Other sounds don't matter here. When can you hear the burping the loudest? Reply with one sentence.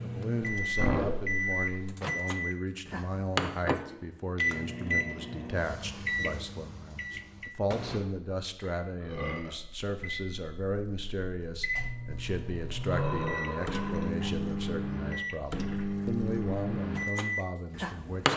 The volume of the burping peaks at 1 second.